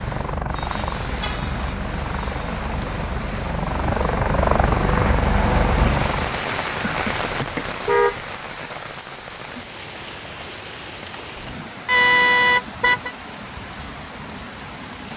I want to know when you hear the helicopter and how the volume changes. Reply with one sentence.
You can hear the helicopter from 0.0 to 6.4 s, getting louder.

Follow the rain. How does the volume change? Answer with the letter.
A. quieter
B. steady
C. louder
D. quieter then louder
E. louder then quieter
E.